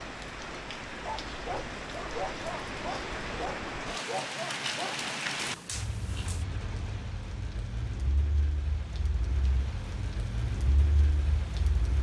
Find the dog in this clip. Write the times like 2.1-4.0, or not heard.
0.9-6.5.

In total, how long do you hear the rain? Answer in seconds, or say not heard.
12 s.